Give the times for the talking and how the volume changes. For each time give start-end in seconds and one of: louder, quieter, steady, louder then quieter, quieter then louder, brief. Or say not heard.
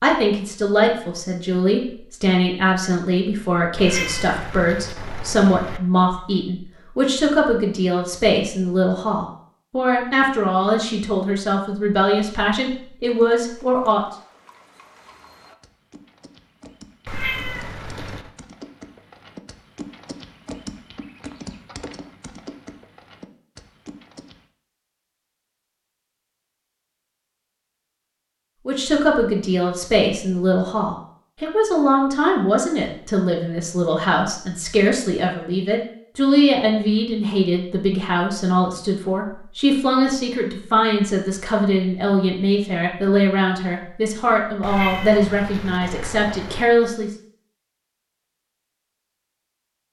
0.0-14.1 steady
28.6-47.1 steady.